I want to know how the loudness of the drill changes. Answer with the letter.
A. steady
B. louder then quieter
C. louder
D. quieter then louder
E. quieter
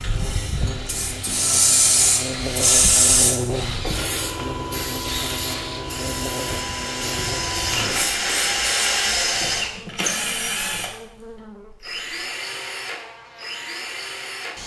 B.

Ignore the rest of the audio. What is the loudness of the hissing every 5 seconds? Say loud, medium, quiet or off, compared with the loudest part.
loud, medium, off.